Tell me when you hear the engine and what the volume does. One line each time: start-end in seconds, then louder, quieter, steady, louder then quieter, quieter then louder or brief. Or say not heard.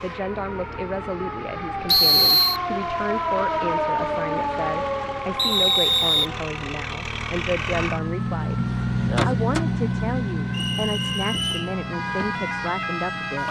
0.0-13.4 louder then quieter.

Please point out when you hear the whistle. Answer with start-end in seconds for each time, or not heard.
1.9-2.6, 5.3-6.3, 10.5-11.7.